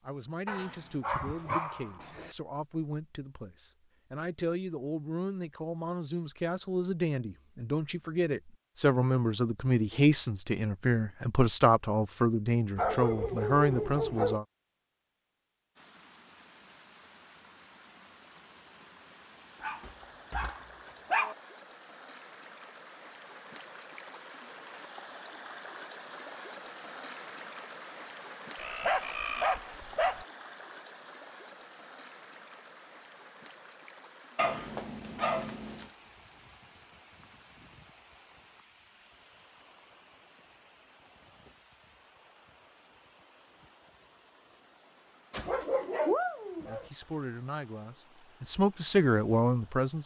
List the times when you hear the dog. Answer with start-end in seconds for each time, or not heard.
0.5-2.4, 12.8-14.4, 19.6-21.4, 28.6-30.2, 34.4-35.9, 45.3-46.9.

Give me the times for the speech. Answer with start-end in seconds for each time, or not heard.
0.1-14.4, 46.6-50.0.